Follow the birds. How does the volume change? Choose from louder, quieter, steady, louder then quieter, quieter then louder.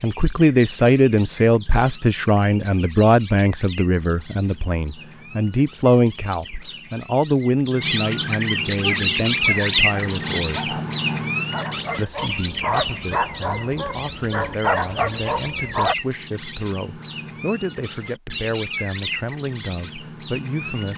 louder then quieter.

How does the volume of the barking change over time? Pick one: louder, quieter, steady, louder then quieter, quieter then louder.
louder.